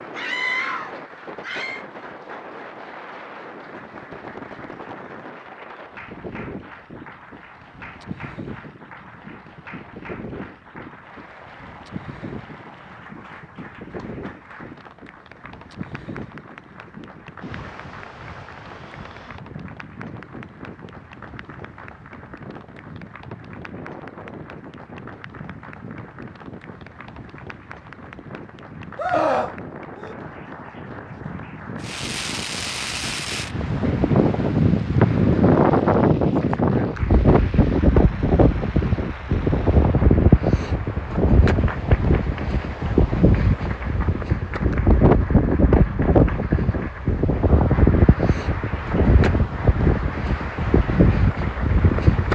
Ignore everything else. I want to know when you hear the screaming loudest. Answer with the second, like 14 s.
29 s.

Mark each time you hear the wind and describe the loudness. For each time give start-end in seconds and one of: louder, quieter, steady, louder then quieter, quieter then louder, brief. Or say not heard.
0.0-52.3 louder.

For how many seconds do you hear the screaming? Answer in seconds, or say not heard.
3 s.